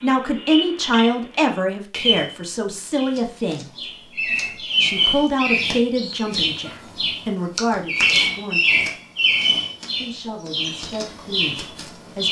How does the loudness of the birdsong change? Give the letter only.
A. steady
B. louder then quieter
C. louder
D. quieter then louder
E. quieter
B.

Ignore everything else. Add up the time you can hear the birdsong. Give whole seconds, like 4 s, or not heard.
12 s.